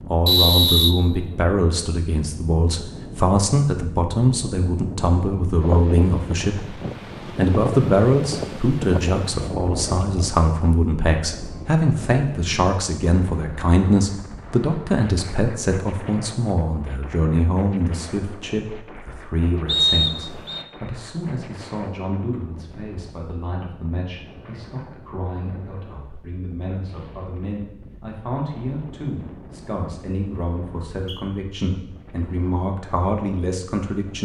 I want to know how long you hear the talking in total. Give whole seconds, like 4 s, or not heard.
34 s.